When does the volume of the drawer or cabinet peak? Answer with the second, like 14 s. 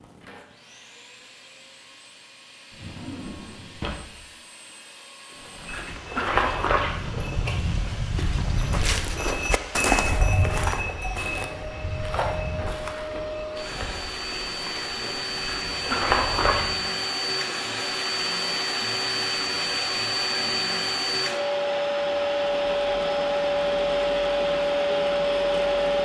4 s.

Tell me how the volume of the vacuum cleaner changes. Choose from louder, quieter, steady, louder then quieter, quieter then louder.
louder.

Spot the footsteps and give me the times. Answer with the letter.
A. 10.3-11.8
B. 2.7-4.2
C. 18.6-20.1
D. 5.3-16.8
D.